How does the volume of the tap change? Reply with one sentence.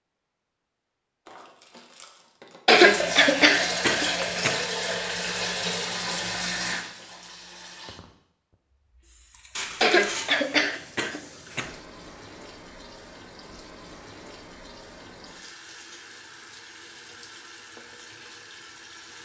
The volume of the tap goes down.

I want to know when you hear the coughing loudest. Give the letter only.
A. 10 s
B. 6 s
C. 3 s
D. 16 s
C.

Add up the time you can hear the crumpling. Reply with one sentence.
The crumpling can be heard for 3 seconds in total.